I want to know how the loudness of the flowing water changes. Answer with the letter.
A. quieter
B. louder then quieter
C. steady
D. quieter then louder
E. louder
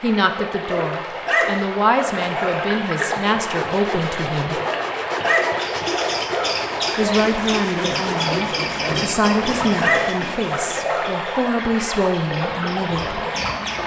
C.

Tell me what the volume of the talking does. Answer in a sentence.
The loudness of the talking stays about the same.